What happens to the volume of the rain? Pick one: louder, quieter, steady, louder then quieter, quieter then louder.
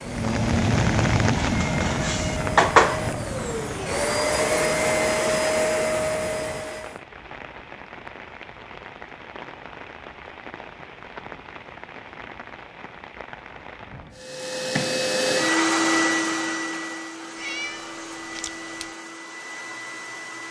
quieter.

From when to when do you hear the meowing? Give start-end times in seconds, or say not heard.
1.4-3.0, 17.4-18.9.